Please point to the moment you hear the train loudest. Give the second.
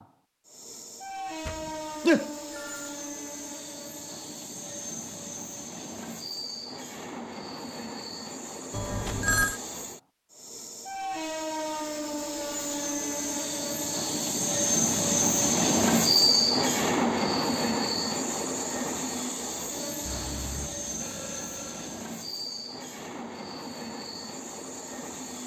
16 s.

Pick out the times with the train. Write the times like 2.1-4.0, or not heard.
0.0-25.4.